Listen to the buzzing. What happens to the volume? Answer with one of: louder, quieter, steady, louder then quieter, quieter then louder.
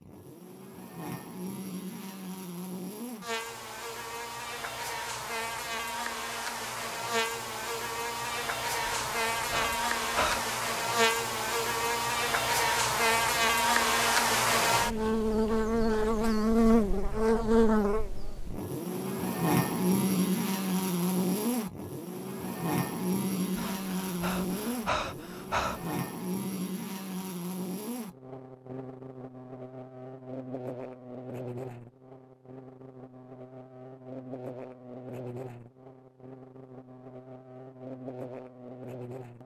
louder then quieter.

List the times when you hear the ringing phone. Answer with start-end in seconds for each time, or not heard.
not heard.